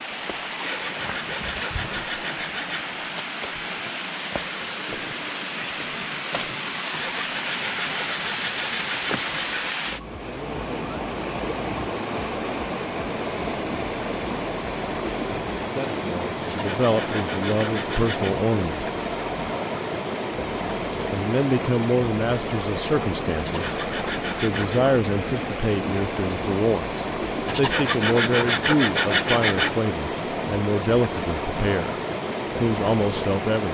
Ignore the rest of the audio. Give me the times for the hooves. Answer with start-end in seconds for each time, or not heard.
not heard.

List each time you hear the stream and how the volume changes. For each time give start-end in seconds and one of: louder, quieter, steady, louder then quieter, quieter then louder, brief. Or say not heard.
0.0-33.6 steady.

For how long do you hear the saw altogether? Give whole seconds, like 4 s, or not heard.
11 s.